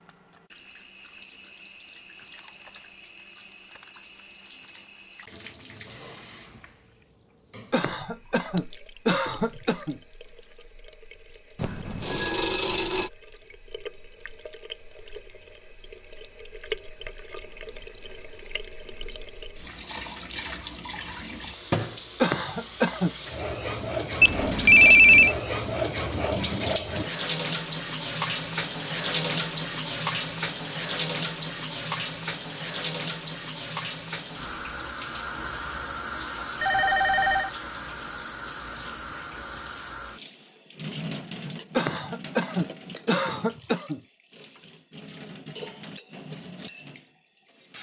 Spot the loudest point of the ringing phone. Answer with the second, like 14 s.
25 s.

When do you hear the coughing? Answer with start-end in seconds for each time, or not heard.
7.7-10.0, 22.2-23.1, 41.8-44.0.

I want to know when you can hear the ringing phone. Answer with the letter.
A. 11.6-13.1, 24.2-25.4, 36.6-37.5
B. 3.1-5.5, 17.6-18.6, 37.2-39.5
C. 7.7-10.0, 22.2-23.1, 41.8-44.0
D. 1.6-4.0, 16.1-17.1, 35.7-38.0
A.